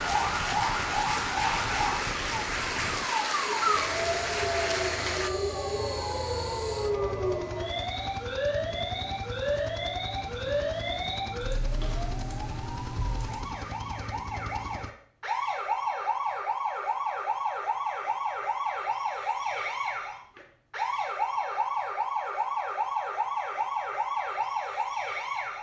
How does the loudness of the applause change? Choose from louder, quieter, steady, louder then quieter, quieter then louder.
steady.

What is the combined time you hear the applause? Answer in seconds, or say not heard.
5 s.